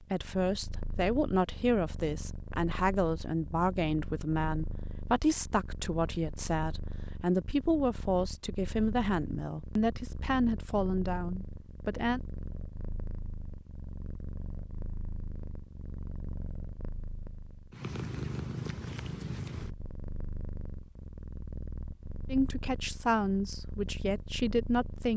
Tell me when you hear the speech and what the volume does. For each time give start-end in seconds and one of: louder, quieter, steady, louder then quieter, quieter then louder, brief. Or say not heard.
0.0-12.2 steady
22.2-25.1 brief.